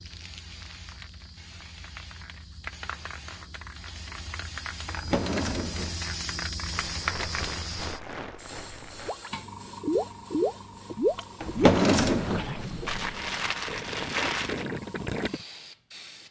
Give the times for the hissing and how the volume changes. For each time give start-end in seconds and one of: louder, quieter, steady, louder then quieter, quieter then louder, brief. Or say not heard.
0.0-16.2 louder then quieter.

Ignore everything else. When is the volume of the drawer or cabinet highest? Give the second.
12 s.